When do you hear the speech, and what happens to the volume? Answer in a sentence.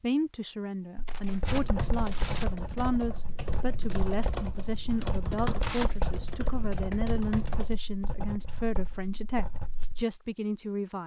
The speech can be heard from 0.0 to 11.0 s, at a steady volume.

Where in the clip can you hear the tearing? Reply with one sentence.
You can hear the tearing from 1.1 to 2.5 s and from 5.6 to 6.0 s.